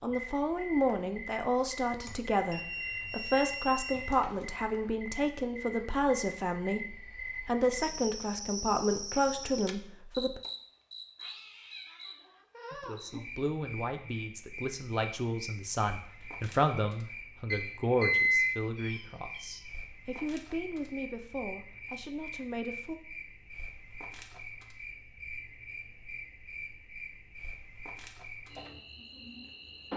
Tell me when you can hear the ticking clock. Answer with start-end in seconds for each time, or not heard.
not heard.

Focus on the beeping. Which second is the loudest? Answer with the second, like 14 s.
18 s.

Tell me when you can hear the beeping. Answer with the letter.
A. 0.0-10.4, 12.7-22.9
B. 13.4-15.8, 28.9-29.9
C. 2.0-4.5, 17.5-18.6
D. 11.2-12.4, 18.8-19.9
C.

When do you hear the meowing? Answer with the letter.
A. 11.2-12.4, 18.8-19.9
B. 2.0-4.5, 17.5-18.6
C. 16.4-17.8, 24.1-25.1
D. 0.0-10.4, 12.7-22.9
A.